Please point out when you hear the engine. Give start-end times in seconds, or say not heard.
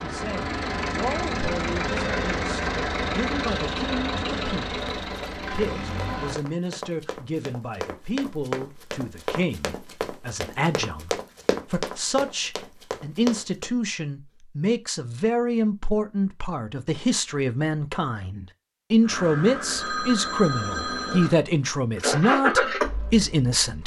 0.0-6.4, 19.0-23.8.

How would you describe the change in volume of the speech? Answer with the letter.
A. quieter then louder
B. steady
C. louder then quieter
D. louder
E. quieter
D.